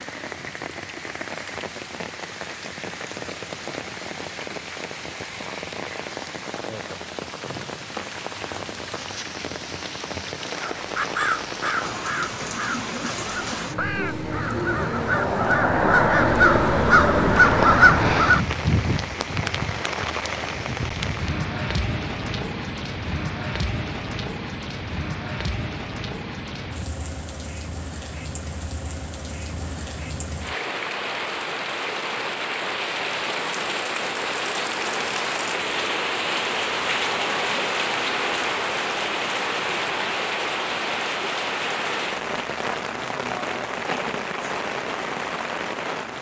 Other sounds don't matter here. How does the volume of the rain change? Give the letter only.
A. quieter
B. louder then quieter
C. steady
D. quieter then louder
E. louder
E.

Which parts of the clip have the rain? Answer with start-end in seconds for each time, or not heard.
0.0-46.1.